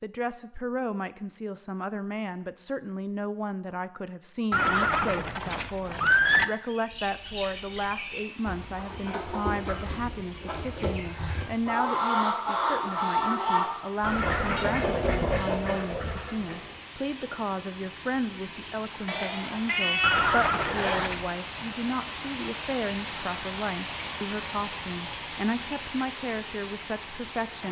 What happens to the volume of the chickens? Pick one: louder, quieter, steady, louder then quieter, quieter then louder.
louder.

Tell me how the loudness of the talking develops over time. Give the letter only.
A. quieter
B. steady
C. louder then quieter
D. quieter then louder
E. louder
B.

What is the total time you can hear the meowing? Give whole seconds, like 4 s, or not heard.
2 s.